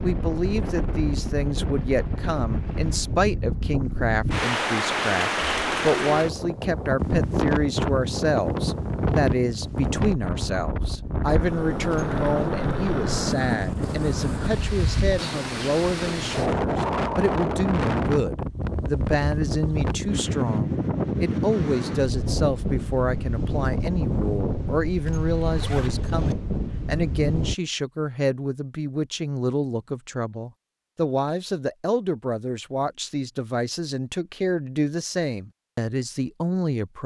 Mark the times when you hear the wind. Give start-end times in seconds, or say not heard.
0.0-27.6.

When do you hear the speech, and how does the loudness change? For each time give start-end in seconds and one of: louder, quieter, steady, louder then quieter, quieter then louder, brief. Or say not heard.
0.0-37.0 steady.